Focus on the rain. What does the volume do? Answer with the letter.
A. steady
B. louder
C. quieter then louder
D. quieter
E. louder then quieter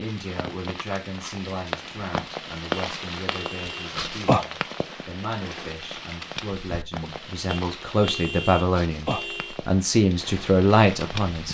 E.